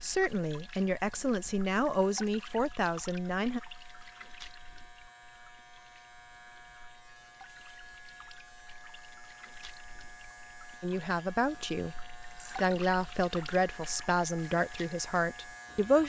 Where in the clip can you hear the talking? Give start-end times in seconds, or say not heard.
0.0-3.6, 10.8-16.0.